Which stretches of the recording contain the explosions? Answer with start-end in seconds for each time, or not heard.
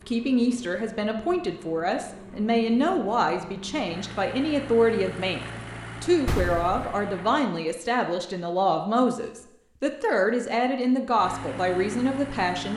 6.2-7.0.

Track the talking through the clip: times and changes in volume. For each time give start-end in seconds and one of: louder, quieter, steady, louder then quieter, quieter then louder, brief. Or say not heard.
0.1-12.7 steady.